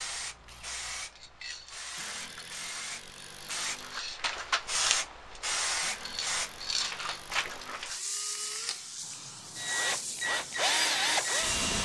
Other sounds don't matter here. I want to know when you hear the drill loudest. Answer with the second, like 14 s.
11 s.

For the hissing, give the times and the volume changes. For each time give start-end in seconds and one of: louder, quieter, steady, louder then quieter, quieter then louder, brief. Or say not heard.
0.0-11.6 louder then quieter.